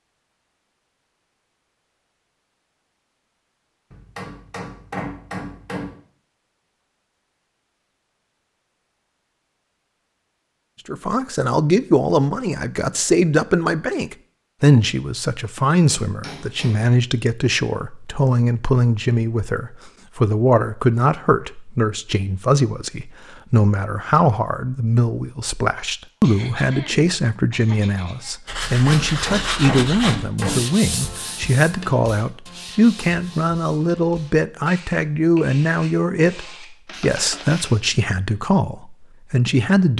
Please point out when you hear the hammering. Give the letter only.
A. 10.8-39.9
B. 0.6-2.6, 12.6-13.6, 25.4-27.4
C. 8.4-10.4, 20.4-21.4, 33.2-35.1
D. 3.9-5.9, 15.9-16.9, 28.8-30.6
D.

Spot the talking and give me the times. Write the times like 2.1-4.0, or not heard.
10.8-39.9.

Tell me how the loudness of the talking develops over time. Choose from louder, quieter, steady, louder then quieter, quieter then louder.
steady.